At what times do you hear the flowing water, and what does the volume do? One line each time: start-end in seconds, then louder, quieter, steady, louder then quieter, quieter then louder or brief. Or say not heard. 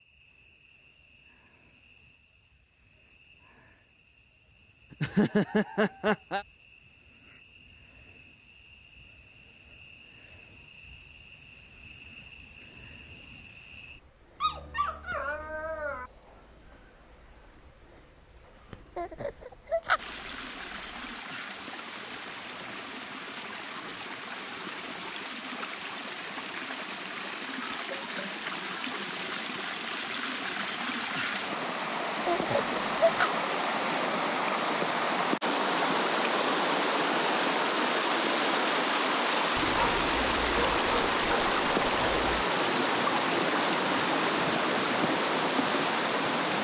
19.9-46.5 louder.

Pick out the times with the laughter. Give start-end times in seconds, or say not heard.
4.9-6.5, 18.9-20.0, 32.2-33.3.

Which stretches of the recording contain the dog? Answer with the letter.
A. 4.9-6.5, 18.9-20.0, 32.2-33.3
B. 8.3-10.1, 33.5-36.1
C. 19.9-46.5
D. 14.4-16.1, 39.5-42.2
D.